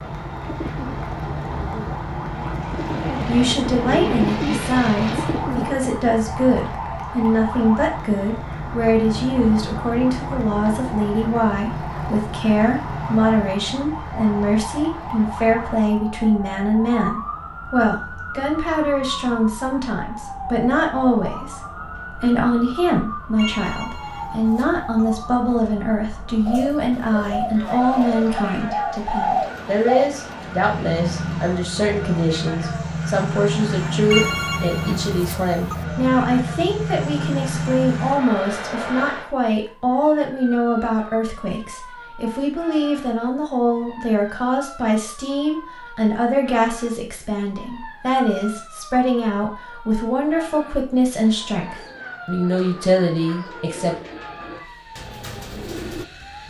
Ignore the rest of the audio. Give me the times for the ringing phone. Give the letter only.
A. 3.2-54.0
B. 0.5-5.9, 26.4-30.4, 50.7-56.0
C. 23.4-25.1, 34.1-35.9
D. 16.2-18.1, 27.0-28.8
C.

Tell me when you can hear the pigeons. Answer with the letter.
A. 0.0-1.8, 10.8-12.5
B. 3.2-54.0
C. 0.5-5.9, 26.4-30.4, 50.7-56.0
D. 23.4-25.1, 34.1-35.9
C.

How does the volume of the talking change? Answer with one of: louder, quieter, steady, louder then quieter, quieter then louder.
steady.